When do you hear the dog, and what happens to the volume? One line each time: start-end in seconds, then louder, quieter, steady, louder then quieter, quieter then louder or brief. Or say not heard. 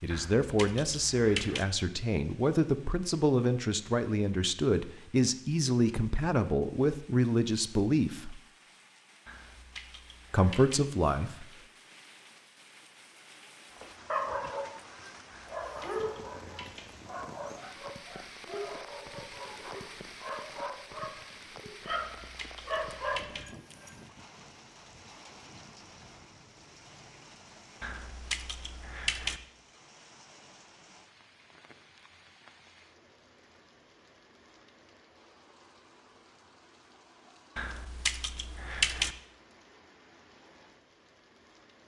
13.7-23.9 quieter then louder.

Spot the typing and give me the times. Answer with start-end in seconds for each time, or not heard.
0.1-1.6, 9.2-10.8, 15.3-16.9, 21.9-23.4, 27.8-29.4, 37.5-39.1.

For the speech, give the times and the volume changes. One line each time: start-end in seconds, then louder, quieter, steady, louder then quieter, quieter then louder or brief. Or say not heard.
0.0-8.4 steady
10.3-11.4 brief.